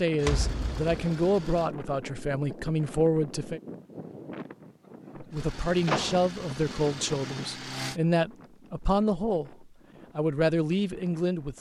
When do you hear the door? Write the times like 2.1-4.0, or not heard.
0.2-1.0, 5.8-6.2.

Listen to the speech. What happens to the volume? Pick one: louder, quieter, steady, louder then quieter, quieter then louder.
steady.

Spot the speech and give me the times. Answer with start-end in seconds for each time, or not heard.
0.0-3.6, 5.2-11.5.